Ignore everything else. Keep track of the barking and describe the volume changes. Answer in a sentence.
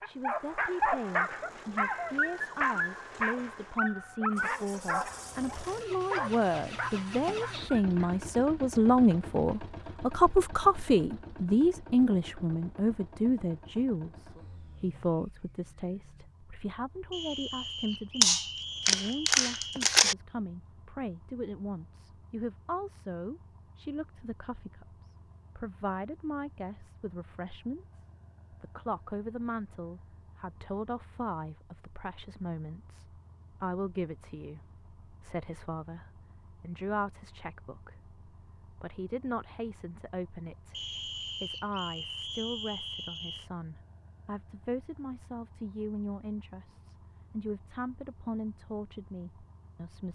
The volume of the barking goes down.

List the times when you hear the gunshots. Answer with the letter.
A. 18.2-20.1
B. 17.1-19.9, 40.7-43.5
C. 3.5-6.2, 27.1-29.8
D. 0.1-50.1
A.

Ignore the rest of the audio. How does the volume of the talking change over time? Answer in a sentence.
The loudness of the talking goes down.